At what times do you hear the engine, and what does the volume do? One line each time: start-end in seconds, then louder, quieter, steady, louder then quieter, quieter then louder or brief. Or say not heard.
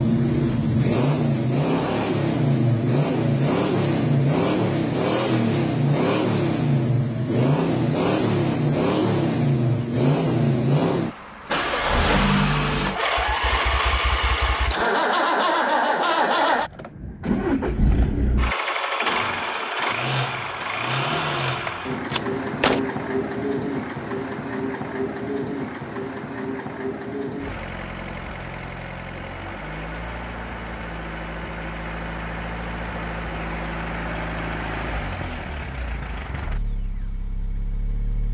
0.0-38.2 quieter.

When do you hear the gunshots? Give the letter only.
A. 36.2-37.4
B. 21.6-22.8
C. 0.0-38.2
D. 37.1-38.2
B.